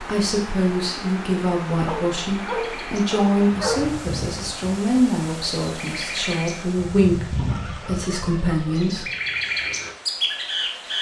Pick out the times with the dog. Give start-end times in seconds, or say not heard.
1.8-3.8, 7.3-8.9.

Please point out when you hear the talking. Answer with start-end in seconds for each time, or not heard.
0.0-9.1.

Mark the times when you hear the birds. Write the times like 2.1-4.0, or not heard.
2.4-10.9.